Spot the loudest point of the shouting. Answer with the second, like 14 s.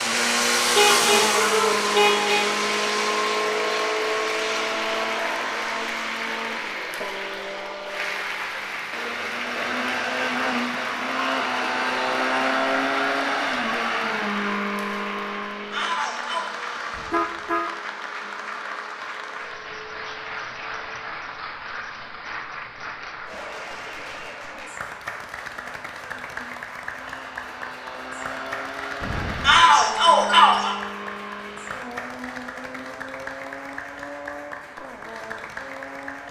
30 s.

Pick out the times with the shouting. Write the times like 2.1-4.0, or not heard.
1.4-1.8, 15.7-16.4, 29.4-30.8.